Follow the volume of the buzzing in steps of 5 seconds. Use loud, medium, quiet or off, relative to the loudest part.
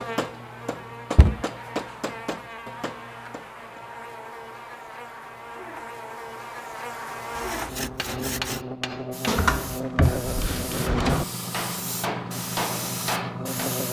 medium, loud, loud.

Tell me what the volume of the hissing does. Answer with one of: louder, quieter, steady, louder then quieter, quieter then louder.
louder.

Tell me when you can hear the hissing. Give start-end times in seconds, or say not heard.
9.1-13.8.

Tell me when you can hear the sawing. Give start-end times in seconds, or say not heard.
7.3-8.7.